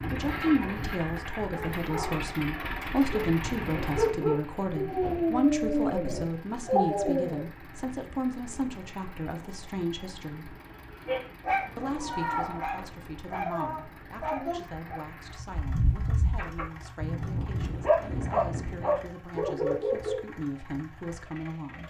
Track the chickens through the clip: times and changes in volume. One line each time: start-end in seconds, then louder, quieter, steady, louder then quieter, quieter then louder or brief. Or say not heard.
not heard.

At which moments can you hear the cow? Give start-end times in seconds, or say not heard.
11.5-12.8.